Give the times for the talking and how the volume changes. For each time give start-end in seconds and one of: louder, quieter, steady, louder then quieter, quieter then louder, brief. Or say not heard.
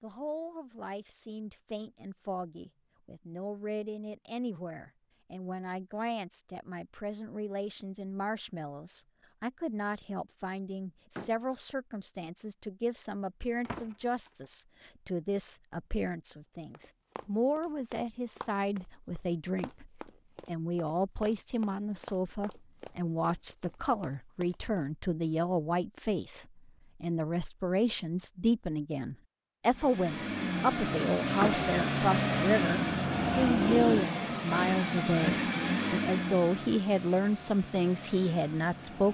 0.0-39.0 louder.